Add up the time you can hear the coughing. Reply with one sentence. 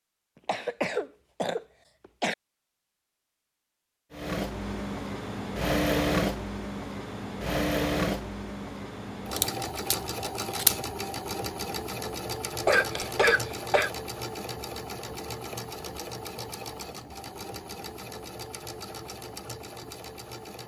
The coughing can be heard for 3 seconds in total.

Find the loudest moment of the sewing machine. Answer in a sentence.
The volume of the sewing machine peaks at 6 seconds.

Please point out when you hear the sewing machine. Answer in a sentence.
You can hear the sewing machine from 4.1 to 20.6 s.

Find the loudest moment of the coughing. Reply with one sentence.
The volume of the coughing peaks at 13 seconds.